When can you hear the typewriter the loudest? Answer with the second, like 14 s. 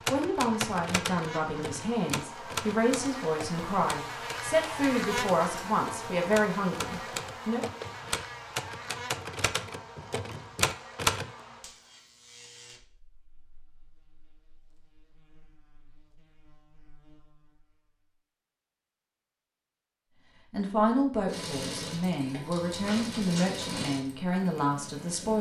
11 s.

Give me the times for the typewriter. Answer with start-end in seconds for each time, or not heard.
0.1-11.3.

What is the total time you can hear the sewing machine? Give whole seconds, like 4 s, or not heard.
4 s.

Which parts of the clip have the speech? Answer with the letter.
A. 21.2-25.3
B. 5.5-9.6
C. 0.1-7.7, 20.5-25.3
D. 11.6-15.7
C.